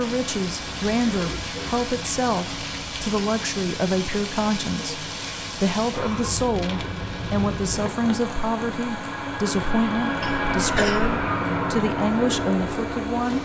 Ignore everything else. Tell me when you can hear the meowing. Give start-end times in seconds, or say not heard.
not heard.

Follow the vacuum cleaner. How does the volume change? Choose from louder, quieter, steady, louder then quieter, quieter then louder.
louder.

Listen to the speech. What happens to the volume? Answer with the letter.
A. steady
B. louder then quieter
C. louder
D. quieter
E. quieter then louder
A.